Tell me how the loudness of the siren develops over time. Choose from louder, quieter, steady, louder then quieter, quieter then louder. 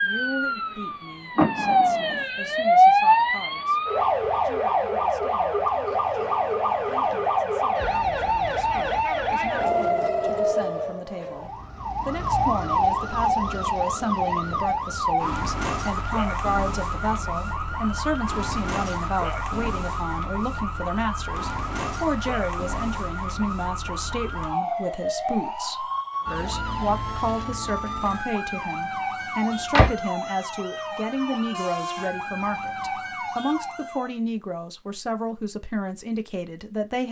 quieter.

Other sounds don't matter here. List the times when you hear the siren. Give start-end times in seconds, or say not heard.
0.0-34.1.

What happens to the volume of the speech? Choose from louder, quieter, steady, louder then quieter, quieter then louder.
louder.